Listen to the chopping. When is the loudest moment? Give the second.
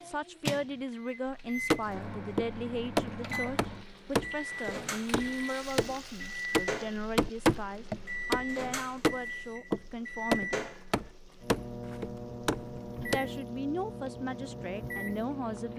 7 s.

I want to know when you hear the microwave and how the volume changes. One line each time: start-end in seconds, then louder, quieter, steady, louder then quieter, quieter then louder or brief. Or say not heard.
0.0-15.7 steady.